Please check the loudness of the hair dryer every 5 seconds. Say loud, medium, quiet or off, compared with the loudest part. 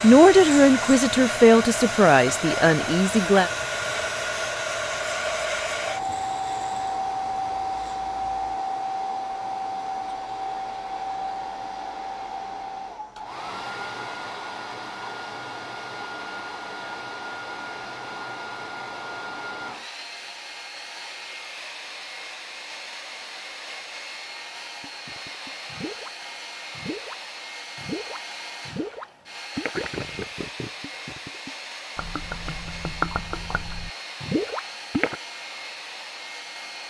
loud, loud, medium, medium, medium, medium, medium, medium.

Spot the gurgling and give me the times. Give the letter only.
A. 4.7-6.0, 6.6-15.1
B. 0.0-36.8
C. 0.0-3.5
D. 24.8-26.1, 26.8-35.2
D.